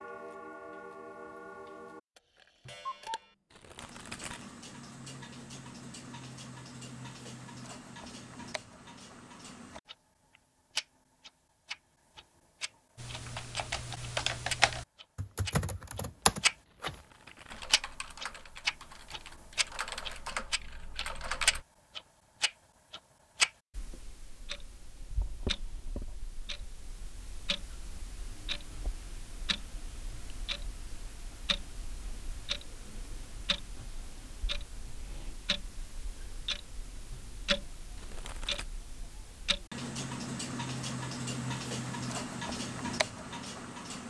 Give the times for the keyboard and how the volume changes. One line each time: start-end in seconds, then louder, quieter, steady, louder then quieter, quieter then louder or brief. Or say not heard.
12.9-21.6 quieter then louder.